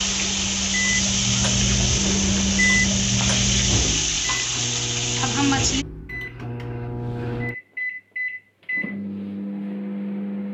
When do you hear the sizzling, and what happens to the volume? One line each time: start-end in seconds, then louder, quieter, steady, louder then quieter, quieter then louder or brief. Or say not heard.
0.0-5.8 steady.